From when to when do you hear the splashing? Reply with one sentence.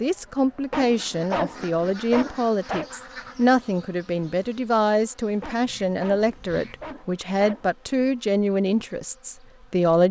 You can't hear the splashing here.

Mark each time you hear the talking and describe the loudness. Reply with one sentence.
The talking can be heard from 0.0 to 10.0 s, at a steady volume.